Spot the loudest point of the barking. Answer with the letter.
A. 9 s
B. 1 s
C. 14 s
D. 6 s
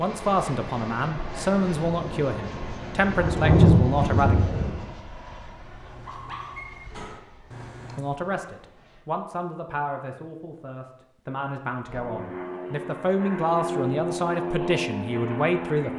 D.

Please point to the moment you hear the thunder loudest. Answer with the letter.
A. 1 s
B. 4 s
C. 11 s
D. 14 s
B.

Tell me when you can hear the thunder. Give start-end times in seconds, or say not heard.
1.8-4.9.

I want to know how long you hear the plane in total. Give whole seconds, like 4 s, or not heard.
13 s.